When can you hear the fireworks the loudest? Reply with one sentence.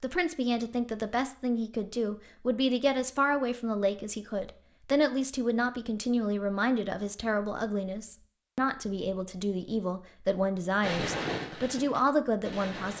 The loudest moment of the fireworks is at 11 seconds.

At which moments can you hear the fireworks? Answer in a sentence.
The fireworks can be heard from 10.8 to 12.9 s.